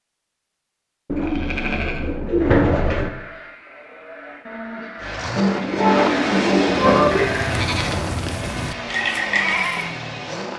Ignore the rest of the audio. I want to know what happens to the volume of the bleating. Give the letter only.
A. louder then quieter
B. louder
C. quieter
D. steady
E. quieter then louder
E.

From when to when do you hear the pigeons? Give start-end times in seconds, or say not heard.
1.1-3.1, 5.3-7.3.